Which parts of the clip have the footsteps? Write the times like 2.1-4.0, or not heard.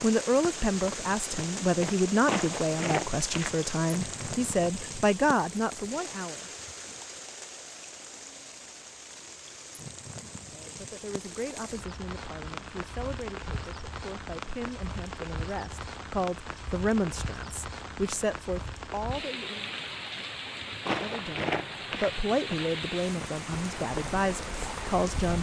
0.0-4.7, 20.9-25.3.